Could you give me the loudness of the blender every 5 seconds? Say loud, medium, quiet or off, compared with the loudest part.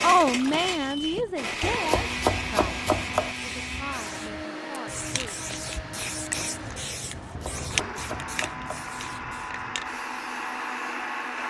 loud, medium, loud.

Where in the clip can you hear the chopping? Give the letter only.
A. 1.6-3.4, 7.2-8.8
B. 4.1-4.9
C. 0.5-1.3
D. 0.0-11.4
A.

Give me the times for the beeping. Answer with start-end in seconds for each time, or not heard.
0.5-1.3.